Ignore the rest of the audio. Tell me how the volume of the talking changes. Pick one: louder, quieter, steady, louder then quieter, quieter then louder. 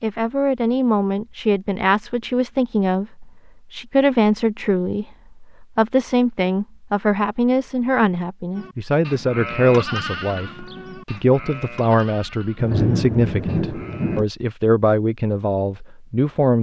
steady.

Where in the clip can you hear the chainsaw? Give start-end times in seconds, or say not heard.
not heard.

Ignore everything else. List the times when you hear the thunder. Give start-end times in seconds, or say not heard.
12.6-14.2.